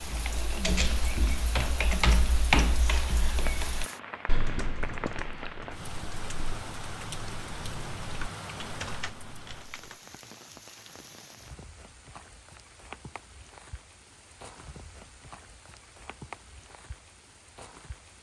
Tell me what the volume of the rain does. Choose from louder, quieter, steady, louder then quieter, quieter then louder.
quieter.